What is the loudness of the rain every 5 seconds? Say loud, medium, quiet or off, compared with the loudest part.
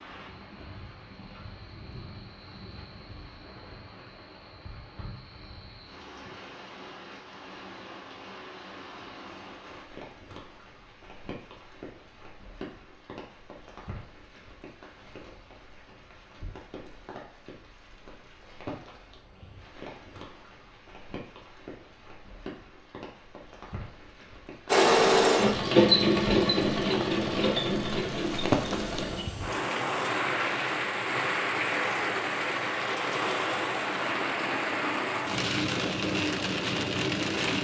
quiet, quiet, quiet, quiet, quiet, loud, loud, loud.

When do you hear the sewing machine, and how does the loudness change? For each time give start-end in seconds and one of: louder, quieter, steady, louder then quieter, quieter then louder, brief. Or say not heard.
24.6-29.2 quieter.